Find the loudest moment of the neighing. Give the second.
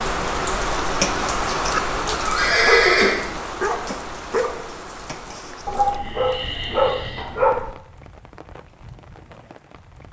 3 s.